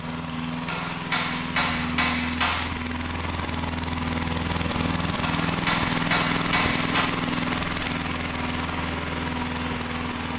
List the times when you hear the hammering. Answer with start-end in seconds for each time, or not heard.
0.7-2.6, 5.2-7.1.